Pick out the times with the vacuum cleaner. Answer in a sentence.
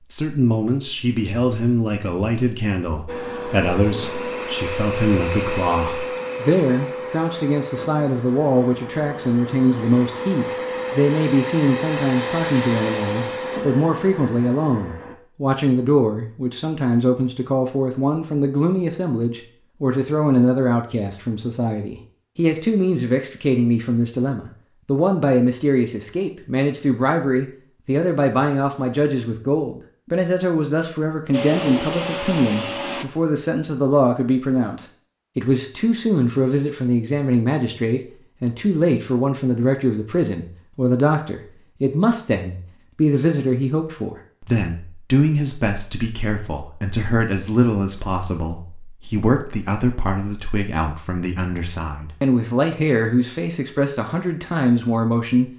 You can hear the vacuum cleaner from 3.0 to 15.2 s and from 31.3 to 33.0 s.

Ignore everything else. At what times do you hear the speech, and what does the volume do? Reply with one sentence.
You can hear the speech from 0.1 to 55.5 s, at a steady volume.